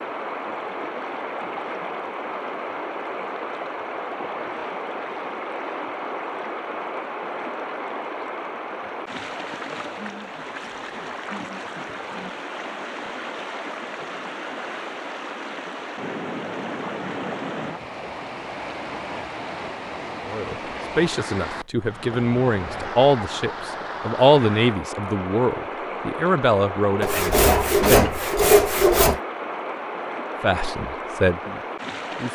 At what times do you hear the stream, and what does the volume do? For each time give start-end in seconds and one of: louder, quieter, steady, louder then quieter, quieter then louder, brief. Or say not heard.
0.0-32.2 steady.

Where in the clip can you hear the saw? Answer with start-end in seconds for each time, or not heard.
27.0-29.2.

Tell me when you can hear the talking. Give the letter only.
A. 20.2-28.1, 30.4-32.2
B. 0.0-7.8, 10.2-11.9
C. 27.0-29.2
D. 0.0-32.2
A.